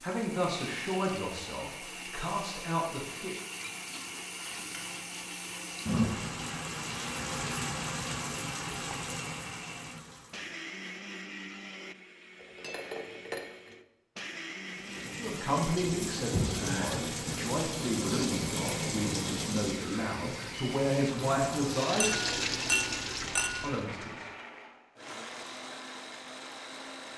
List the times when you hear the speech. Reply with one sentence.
The speech can be heard from 0.0 to 3.4 s, from 15.2 to 22.3 s and from 23.6 to 24.2 s.